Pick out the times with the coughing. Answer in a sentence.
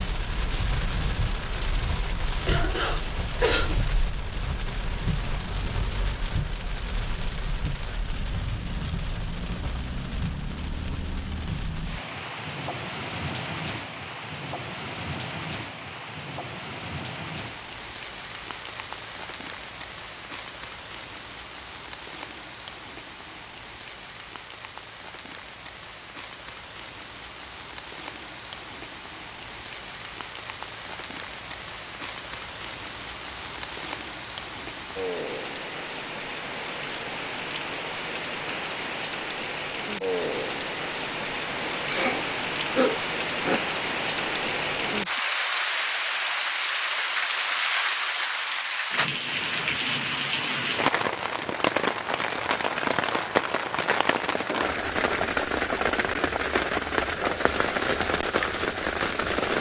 You can hear the coughing from 2.5 to 3.8 s and from 41.6 to 43.6 s.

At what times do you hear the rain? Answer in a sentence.
The rain can be heard from 0.0 to 59.5 s.